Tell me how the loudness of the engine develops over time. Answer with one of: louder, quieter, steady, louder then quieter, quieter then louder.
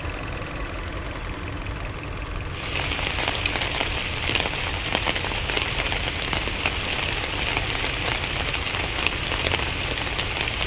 steady.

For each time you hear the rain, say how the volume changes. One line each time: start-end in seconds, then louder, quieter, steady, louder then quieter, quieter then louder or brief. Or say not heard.
2.5-10.6 steady.